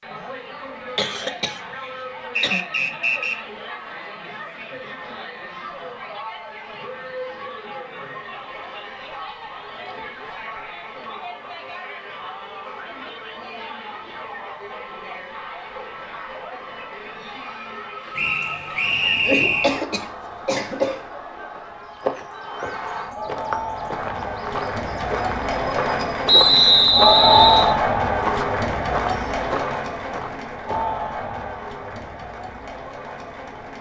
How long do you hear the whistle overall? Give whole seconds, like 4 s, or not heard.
4 s.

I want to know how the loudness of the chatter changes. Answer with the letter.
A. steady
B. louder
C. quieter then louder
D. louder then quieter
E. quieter
B.